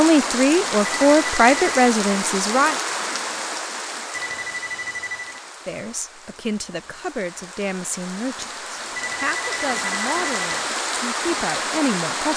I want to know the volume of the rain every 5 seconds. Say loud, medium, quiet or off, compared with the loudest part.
loud, medium, loud.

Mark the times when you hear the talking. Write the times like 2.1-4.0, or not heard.
0.0-2.8, 5.7-12.3.